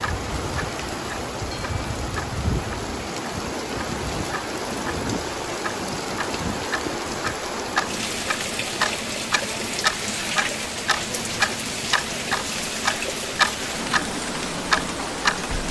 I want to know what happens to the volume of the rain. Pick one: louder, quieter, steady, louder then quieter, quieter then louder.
steady.